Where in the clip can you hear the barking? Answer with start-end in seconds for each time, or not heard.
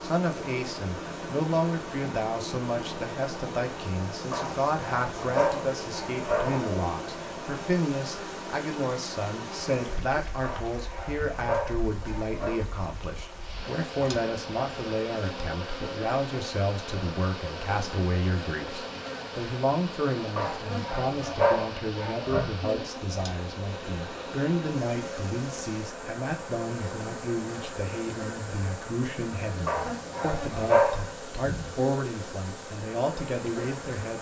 4.3-6.8, 10.4-12.7, 20.4-22.4, 29.6-31.1.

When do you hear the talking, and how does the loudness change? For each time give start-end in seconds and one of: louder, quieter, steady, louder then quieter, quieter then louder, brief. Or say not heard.
0.0-34.1 steady.